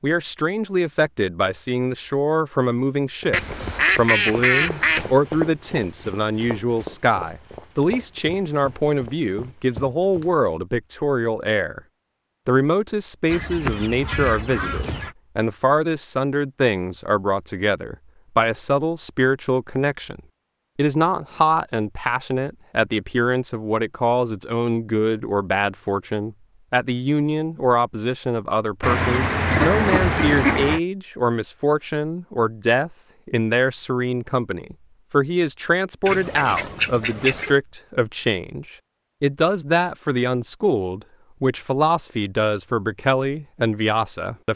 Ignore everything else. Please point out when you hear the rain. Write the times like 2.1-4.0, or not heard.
not heard.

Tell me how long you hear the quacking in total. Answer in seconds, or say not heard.
7 s.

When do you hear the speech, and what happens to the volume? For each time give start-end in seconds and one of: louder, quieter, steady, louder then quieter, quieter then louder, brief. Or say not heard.
0.0-11.8 steady
12.4-44.5 steady.